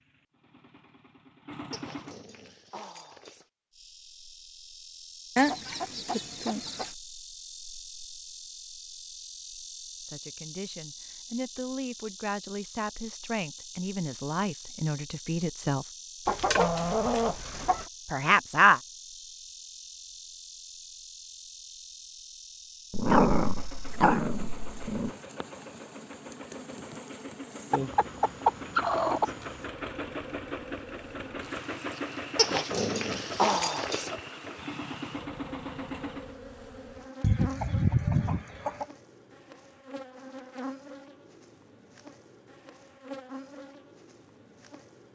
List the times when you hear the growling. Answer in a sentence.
The growling can be heard from 1.7 to 3.5 s, from 22.9 to 25.1 s and from 32.4 to 34.1 s.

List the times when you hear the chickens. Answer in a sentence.
You can hear the chickens from 5.3 to 7.0 s, from 16.2 to 17.9 s, from 27.7 to 29.3 s and from 37.2 to 38.9 s.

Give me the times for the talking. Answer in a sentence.
The talking can be heard from 10.1 to 15.8 s and from 18.1 to 18.8 s.